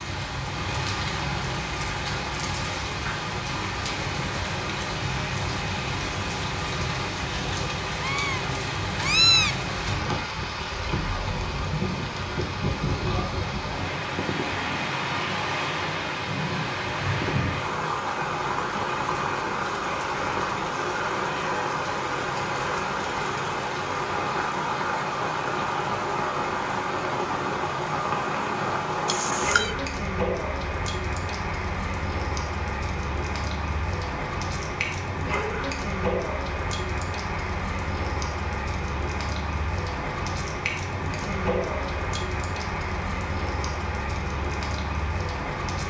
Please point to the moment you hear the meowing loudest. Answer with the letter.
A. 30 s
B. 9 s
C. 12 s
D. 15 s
B.